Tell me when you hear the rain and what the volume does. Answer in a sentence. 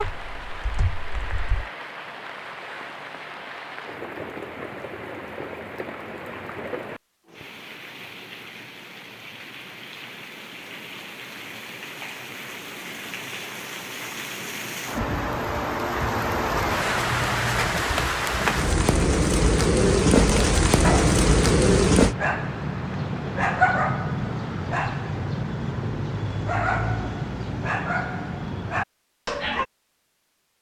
You can hear the rain from 0.0 to 22.1 s, getting louder.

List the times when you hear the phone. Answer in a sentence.
The phone can't be heard in this clip.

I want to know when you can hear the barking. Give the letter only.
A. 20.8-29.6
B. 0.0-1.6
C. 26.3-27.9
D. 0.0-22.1
A.